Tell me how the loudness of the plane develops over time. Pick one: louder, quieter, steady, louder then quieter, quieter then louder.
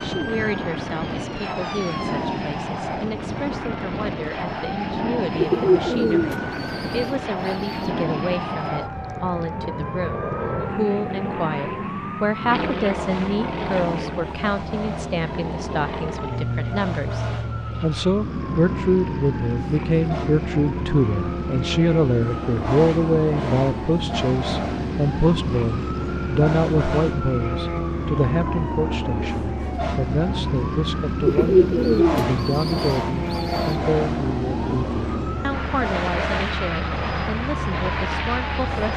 steady.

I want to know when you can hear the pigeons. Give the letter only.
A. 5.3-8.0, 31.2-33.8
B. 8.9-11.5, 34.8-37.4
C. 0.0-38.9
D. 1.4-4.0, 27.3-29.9
A.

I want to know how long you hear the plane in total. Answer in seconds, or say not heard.
39 s.